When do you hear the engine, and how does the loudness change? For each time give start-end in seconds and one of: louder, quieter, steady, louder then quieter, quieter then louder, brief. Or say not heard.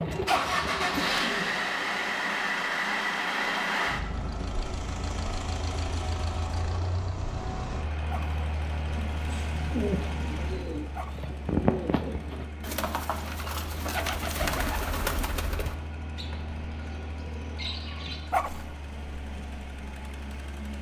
0.0-20.7 quieter.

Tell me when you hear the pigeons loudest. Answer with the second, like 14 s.
12 s.